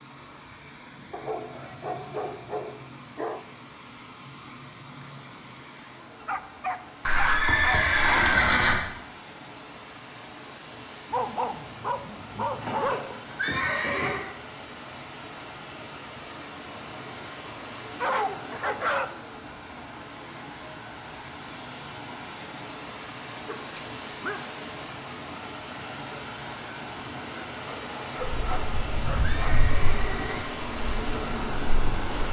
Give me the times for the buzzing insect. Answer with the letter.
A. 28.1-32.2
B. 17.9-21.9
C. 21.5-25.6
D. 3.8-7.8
A.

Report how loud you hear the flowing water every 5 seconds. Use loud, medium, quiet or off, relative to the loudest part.
medium, medium, medium, medium, medium, loud, loud.